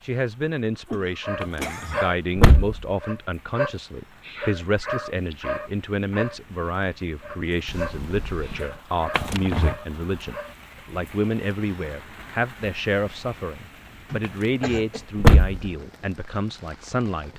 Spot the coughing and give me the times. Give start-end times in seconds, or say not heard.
0.8-2.1, 7.7-8.8, 14.1-15.1.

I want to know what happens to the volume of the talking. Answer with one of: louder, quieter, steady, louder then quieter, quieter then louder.
steady.